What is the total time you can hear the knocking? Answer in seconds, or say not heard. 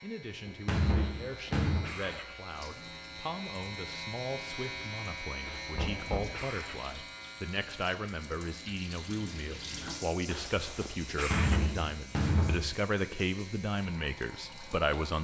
4 s.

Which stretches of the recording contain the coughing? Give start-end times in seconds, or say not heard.
0.9-2.4, 5.5-7.0, 10.2-11.8.